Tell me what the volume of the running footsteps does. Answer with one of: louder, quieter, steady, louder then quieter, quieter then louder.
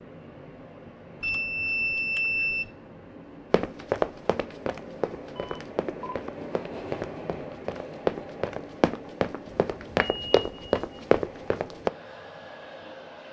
quieter then louder.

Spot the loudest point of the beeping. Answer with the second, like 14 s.
2 s.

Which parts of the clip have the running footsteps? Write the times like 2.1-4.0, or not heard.
3.5-11.9.